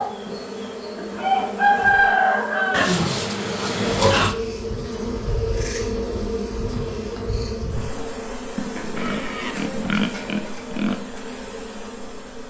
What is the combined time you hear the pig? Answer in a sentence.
The pig can be heard for 4 seconds in total.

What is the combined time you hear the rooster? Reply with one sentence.
You can hear the rooster for 2 seconds altogether.